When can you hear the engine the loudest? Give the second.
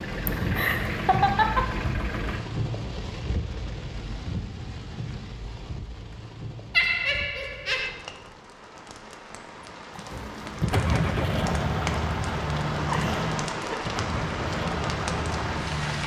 11 s.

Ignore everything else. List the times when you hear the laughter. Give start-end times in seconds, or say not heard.
0.2-1.7, 6.7-7.9, 12.8-13.9.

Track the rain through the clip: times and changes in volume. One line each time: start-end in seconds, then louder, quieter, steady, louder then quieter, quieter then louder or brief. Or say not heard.
0.0-16.0 quieter then louder.